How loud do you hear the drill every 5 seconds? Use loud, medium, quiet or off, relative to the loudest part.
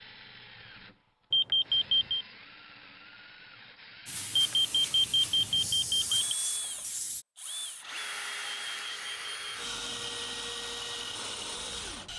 quiet, loud, loud.